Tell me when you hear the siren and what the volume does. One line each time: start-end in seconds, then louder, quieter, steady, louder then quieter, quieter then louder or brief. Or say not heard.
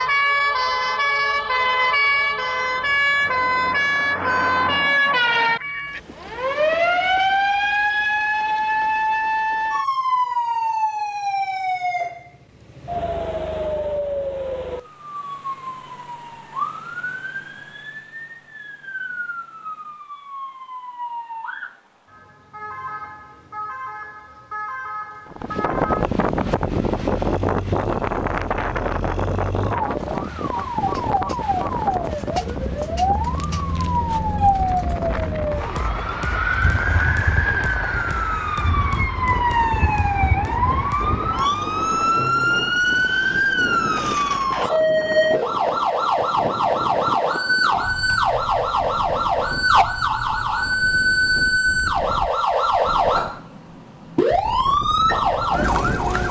0.0-56.2 quieter then louder.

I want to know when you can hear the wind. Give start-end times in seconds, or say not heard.
25.2-53.4, 54.3-56.2.